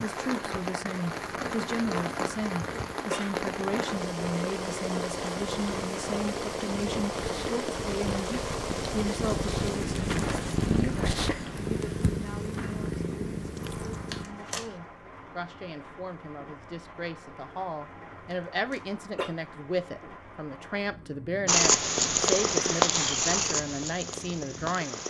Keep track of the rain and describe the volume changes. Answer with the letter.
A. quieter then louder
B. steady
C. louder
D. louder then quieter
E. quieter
E.